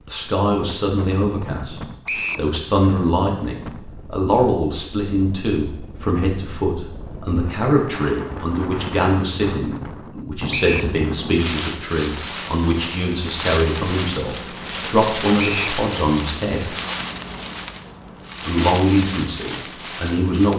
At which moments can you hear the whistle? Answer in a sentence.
The whistle can be heard from 2.0 to 2.5 s, from 10.5 to 10.9 s and from 15.3 to 15.8 s.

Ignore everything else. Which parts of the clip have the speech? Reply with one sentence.
The speech can be heard from 0.1 to 1.8 s, from 2.4 to 16.7 s and from 18.4 to 20.5 s.